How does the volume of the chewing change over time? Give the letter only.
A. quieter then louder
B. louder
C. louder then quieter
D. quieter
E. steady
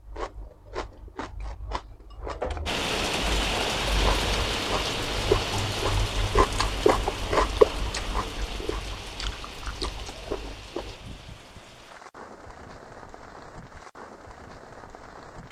C.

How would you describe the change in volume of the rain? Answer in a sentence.
The loudness of the rain goes down.